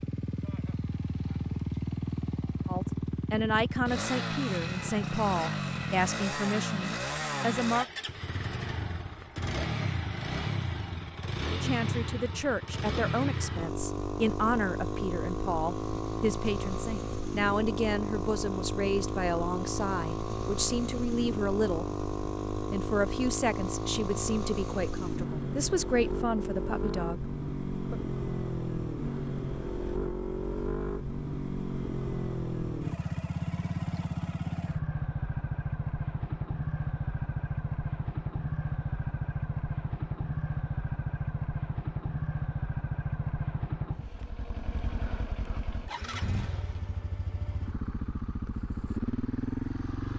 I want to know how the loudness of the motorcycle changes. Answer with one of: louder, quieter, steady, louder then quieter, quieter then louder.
steady.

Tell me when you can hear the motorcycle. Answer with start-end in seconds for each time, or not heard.
0.0-50.1.